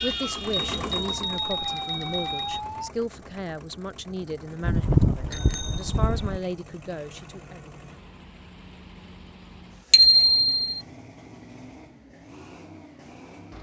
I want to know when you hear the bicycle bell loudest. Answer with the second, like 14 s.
10 s.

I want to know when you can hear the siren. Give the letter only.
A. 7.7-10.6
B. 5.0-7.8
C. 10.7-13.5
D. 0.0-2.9
D.